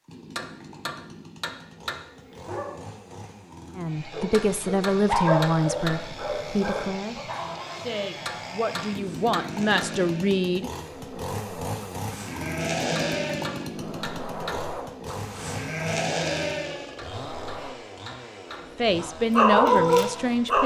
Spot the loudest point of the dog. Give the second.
20 s.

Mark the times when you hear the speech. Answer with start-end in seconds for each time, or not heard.
3.8-10.7, 18.8-20.6.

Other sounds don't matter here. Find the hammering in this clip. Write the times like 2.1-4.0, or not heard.
0.3-2.0, 4.3-6.0, 8.2-9.9, 12.9-14.6, 16.9-18.6.